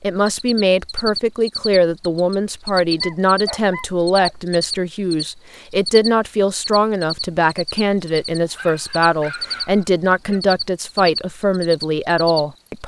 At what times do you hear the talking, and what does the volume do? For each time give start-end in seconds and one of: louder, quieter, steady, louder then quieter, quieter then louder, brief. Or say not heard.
0.0-12.8 steady.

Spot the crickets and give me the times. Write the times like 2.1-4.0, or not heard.
0.2-12.8.